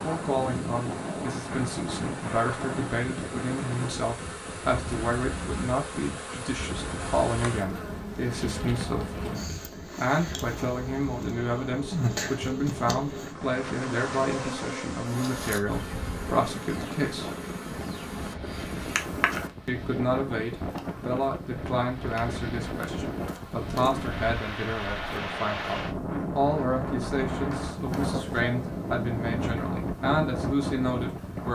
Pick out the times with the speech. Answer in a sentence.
You can hear the speech from 0.0 to 17.3 s and from 19.6 to 31.4 s.